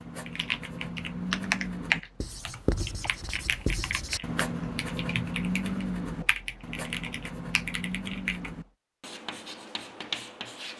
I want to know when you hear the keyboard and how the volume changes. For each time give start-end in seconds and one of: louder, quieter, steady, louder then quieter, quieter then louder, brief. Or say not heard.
0.2-8.6 quieter.